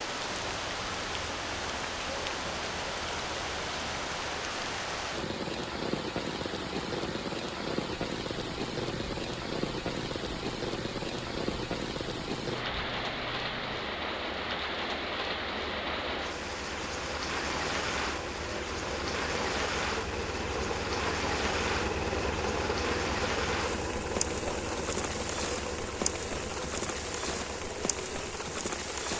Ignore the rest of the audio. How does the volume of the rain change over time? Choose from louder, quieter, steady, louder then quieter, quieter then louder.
steady.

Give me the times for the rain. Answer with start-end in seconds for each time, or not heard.
0.0-29.1.